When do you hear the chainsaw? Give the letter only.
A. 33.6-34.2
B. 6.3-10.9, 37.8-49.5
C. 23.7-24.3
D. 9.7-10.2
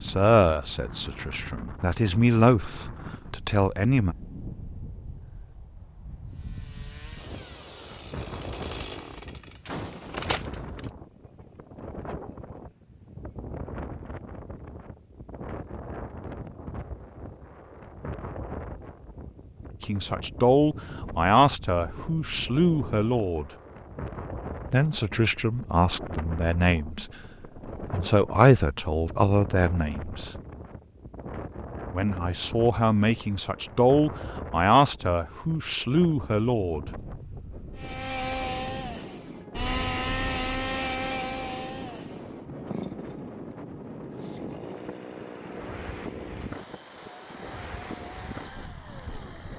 B.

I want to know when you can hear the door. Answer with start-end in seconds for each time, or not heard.
9.7-10.2.